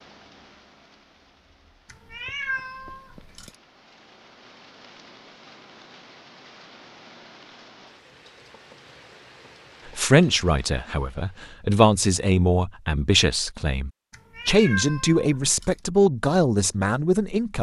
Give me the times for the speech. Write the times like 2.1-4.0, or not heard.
9.9-17.5.